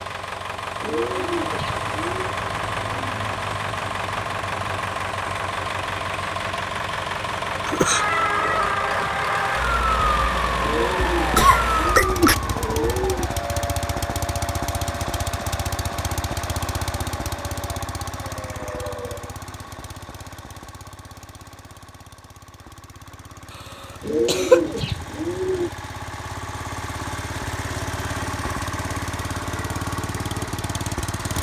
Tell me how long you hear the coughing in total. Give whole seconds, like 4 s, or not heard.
2 s.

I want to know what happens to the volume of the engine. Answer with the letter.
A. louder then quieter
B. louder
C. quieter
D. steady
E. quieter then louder
E.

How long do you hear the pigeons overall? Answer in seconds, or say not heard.
6 s.